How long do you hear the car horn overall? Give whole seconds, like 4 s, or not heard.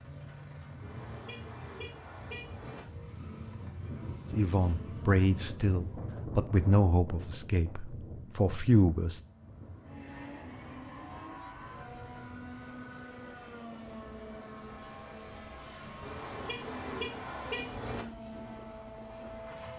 4 s.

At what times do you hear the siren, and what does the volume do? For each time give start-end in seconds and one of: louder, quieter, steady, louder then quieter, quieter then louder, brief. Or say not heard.
not heard.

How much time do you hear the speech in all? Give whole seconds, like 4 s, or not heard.
5 s.